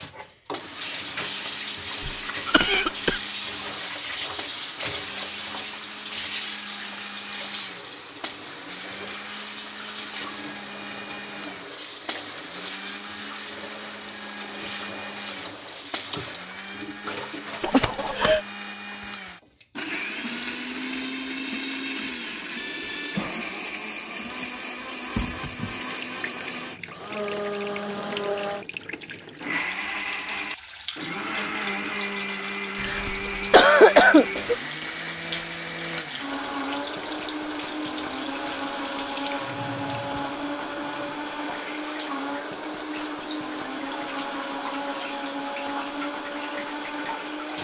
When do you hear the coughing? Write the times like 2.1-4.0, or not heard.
2.0-3.2, 17.6-18.4, 32.8-34.5.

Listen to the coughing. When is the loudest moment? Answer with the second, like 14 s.
34 s.